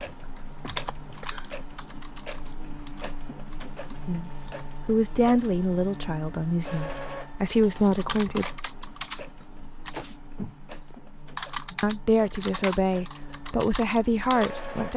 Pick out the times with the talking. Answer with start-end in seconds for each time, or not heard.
4.0-8.4, 11.7-14.9.